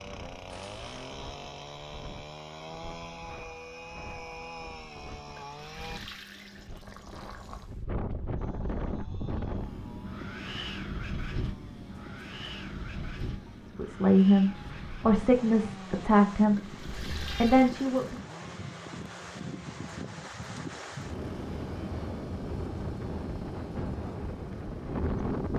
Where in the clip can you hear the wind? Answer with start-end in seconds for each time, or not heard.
0.0-25.5.